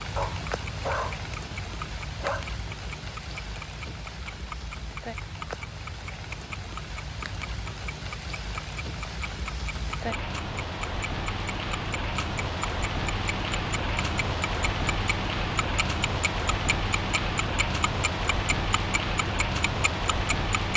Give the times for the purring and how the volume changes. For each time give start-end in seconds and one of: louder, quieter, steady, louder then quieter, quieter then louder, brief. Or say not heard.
not heard.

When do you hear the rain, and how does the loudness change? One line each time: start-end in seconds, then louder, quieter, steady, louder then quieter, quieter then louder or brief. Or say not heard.
0.0-20.7 louder.